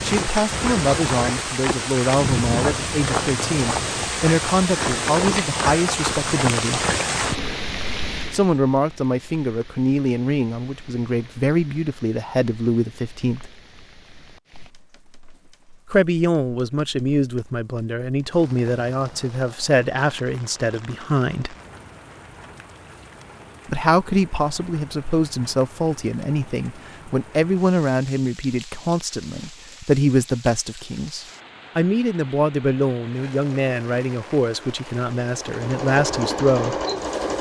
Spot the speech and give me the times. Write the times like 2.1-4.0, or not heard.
0.0-6.8, 8.3-13.5, 15.9-21.6, 23.6-36.8.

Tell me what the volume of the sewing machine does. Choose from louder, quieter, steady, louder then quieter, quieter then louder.
louder.